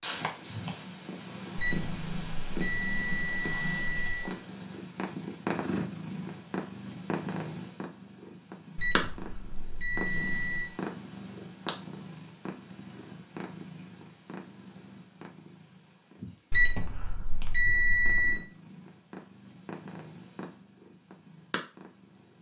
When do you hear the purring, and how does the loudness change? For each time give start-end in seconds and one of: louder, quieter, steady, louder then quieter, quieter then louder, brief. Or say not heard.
0.0-22.3 quieter.